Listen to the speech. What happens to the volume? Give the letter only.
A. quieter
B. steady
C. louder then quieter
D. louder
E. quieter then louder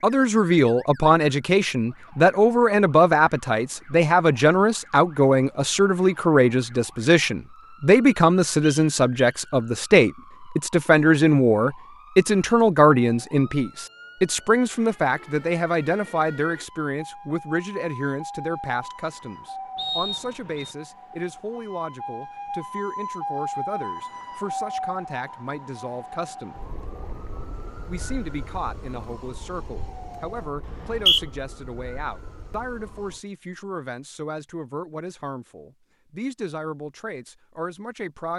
A.